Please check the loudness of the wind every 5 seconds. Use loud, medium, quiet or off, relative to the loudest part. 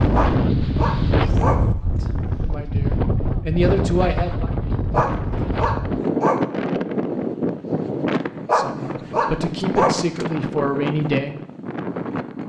loud, loud, medium.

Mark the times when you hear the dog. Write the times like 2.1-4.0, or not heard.
0.1-1.6, 4.9-6.5, 8.4-10.0.